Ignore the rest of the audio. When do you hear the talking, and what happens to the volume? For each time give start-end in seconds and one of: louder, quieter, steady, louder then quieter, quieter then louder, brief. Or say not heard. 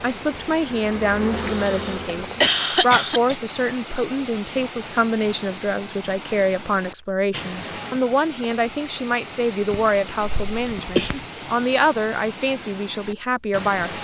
0.0-13.9 steady.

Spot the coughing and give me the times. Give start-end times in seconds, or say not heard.
1.3-3.4, 9.7-11.2.